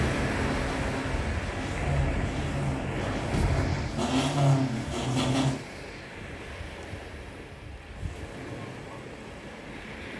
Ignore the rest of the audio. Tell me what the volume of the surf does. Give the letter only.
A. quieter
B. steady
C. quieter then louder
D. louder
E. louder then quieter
A.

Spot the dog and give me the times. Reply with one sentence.
You can't hear the dog here.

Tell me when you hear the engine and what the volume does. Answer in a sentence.
You can hear the engine from 0.0 to 5.6 s, getting louder.